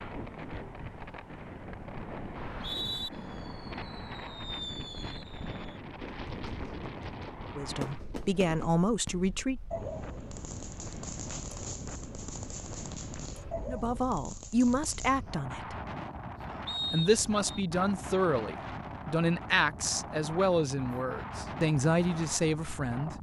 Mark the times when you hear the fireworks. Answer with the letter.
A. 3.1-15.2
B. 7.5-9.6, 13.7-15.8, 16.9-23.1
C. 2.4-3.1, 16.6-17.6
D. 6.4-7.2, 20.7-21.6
A.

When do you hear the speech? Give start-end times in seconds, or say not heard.
7.5-9.6, 13.7-15.8, 16.9-23.1.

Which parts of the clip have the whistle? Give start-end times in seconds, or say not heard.
2.4-3.1, 16.6-17.6.